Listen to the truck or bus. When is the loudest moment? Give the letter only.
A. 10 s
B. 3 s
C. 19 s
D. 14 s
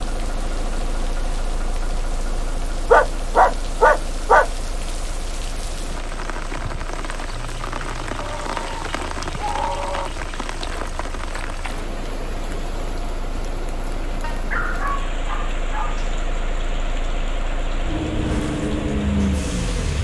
C.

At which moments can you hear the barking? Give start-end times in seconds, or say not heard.
2.9-4.5, 8.2-10.1, 14.2-16.1.